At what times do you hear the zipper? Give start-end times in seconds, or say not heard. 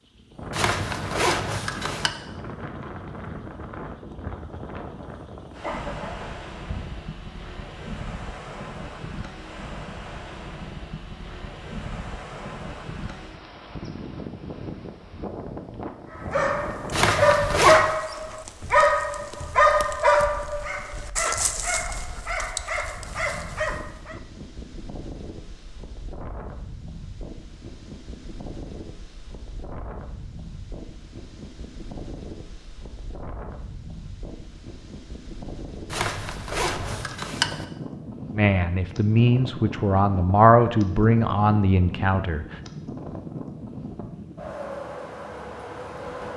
0.5-2.1, 16.9-17.9, 35.9-37.6.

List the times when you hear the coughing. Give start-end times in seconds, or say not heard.
5.6-6.8.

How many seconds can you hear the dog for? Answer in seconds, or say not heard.
8 s.